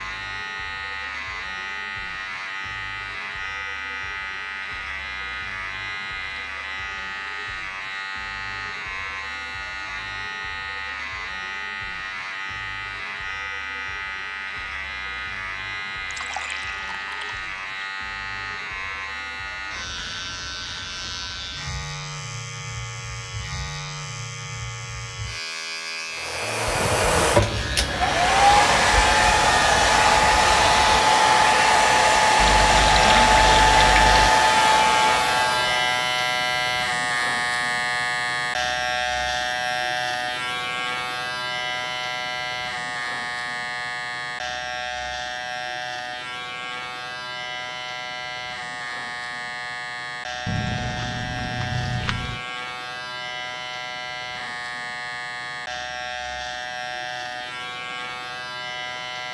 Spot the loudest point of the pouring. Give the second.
33 s.